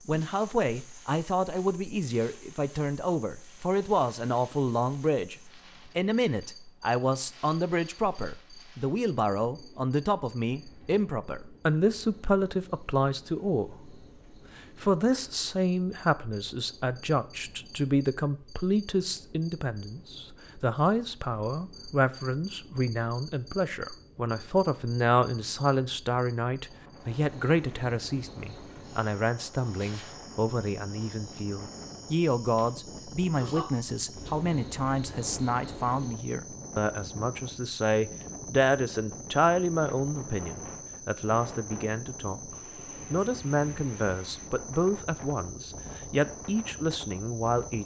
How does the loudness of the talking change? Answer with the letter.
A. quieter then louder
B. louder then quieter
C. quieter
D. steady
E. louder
D.